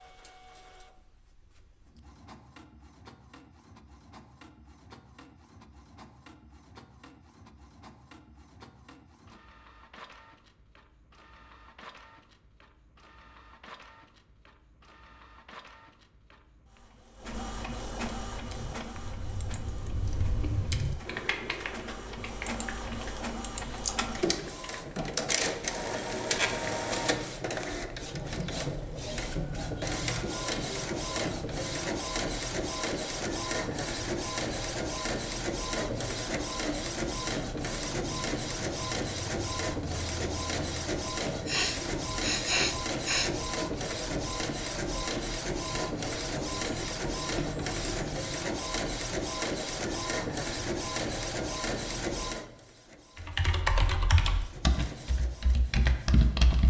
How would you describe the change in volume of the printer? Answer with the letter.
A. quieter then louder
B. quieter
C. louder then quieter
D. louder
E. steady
D.